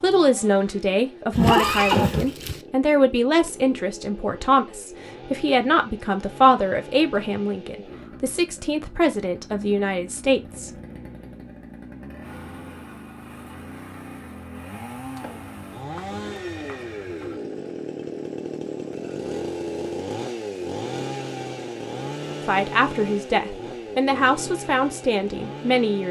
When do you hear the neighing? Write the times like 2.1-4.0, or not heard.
1.3-2.6, 14.7-17.4.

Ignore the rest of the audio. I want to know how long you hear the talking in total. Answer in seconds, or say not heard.
14 s.